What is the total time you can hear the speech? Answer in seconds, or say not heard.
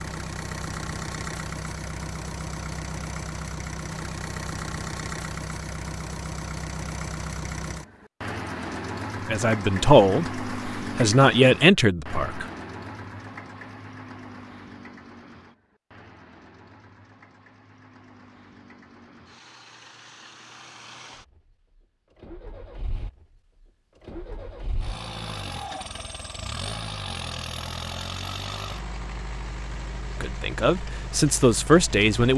5 s.